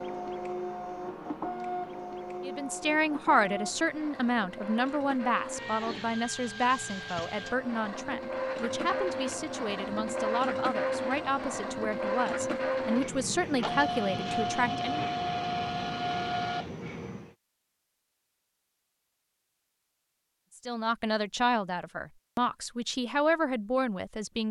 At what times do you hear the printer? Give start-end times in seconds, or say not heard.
0.0-17.4.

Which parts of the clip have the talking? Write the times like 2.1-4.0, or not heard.
2.5-15.1, 20.6-24.4.